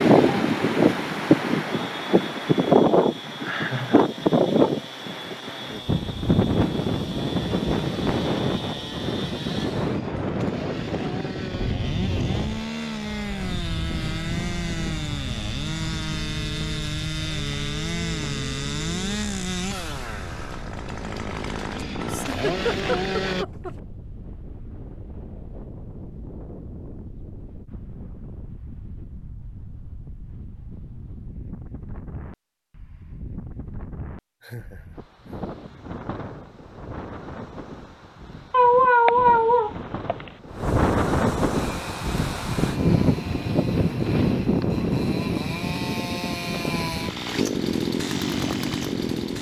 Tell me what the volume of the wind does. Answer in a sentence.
The volume of the wind goes down, then up.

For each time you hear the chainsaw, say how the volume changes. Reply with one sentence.
The chainsaw can be heard from 0.0 to 23.4 s, getting louder; and from 41.5 to 49.3 s, getting louder.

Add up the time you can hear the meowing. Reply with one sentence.
The meowing can be heard for 2 seconds in total.